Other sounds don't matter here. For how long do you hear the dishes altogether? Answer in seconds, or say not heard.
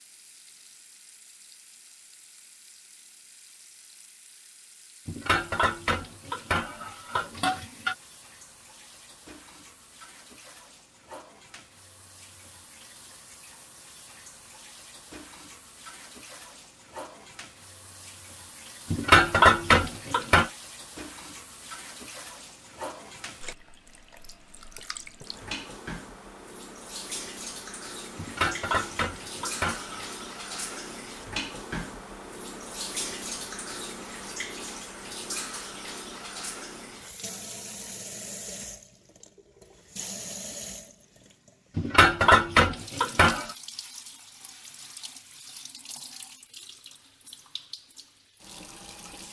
8 s.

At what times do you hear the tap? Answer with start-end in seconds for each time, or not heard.
0.0-49.2.